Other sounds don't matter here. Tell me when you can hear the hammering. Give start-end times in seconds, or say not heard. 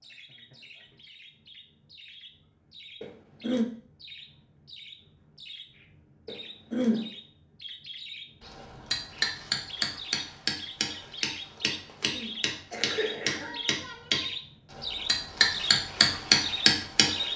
8.4-17.2.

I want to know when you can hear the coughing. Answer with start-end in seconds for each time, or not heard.
3.0-3.6, 6.2-7.0, 12.1-13.6.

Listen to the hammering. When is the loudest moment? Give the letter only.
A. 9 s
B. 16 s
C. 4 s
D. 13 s
B.